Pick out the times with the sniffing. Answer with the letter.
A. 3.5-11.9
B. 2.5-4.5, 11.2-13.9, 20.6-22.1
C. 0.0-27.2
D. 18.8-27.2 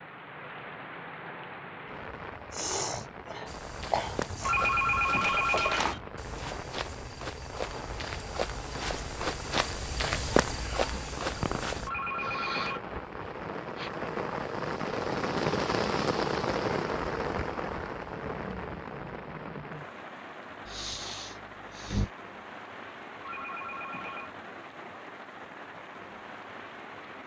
B.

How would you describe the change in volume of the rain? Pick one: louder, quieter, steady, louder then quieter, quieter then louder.
louder then quieter.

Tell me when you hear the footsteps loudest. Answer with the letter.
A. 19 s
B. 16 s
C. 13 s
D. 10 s
D.